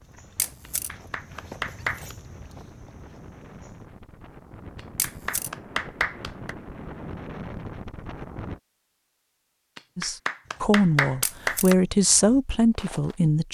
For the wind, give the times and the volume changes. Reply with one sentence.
You can hear the wind from 0.0 to 8.6 s, getting louder.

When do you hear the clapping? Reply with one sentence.
The clapping can be heard from 0.7 to 2.1 s, from 4.8 to 6.5 s and from 9.8 to 11.8 s.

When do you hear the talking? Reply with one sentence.
The talking can be heard from 9.9 to 13.5 s.